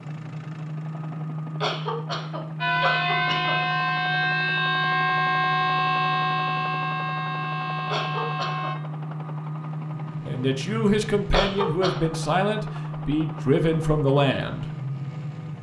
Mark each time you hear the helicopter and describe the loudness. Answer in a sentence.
The helicopter can be heard from 0.0 to 15.5 s, at a steady volume.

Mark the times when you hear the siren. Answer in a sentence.
The siren can be heard from 2.6 to 8.8 s.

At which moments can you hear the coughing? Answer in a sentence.
The coughing can be heard from 1.6 to 3.5 s, from 7.9 to 8.7 s and from 11.3 to 12.0 s.